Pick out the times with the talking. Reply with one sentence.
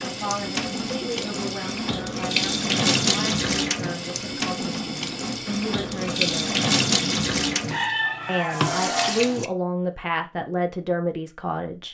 You can hear the talking from 0.0 to 6.7 s and from 8.2 to 11.8 s.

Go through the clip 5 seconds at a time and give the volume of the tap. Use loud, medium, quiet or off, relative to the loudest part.
loud, loud, off.